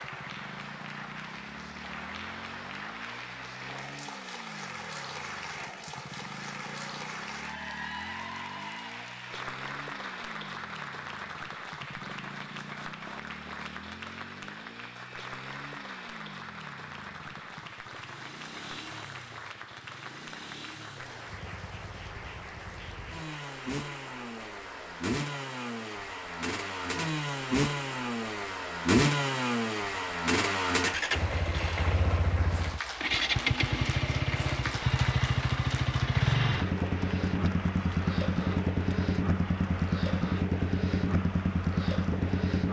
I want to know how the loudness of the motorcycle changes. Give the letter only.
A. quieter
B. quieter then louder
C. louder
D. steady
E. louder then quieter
C.